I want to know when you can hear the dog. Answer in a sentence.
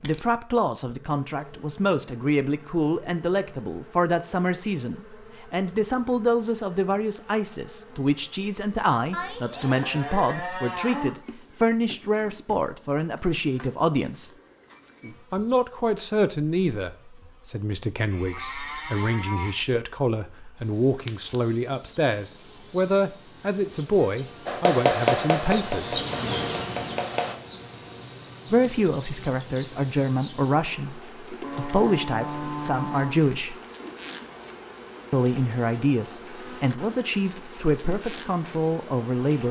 You can't hear the dog here.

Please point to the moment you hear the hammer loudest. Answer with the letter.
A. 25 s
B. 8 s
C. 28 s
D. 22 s
A.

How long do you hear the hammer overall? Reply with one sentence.
You can hear the hammer for 3 seconds altogether.